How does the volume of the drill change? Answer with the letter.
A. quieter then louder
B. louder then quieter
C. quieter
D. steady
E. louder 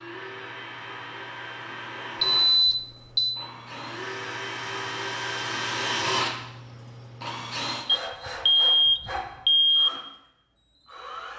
B.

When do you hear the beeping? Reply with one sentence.
You can hear the beeping from 2.2 to 3.4 s and from 7.8 to 9.9 s.